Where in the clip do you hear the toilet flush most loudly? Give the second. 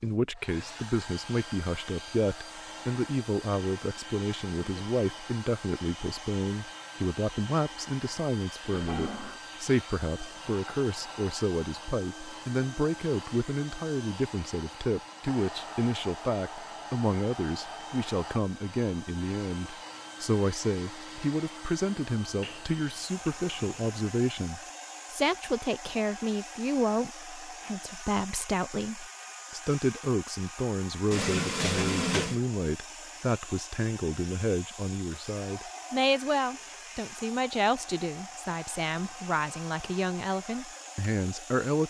32 s.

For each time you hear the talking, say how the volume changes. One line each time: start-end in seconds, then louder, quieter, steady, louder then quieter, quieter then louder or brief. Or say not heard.
0.0-41.8 steady.